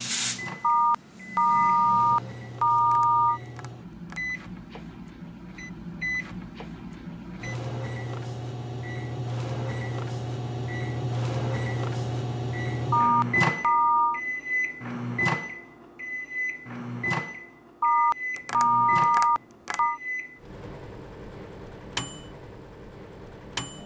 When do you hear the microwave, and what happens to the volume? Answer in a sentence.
You can hear the microwave from 0.0 to 23.8 s, getting louder then quieter.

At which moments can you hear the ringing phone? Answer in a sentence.
The ringing phone can be heard from 0.6 to 3.4 s, from 12.9 to 14.2 s and from 17.8 to 20.0 s.